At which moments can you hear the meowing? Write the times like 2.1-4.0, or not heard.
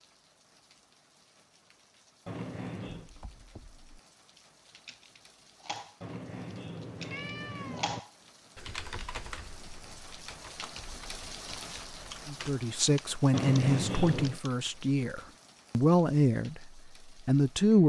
2.2-3.1, 6.0-8.0, 13.3-14.4.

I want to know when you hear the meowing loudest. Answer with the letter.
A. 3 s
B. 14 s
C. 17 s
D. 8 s
B.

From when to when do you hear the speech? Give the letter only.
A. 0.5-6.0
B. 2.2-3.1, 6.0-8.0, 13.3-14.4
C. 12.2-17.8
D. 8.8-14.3
C.